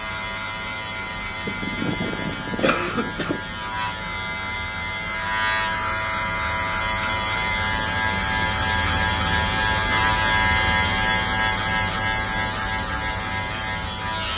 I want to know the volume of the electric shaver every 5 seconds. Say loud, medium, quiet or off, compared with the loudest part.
medium, loud, loud.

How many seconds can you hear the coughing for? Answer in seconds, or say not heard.
2 s.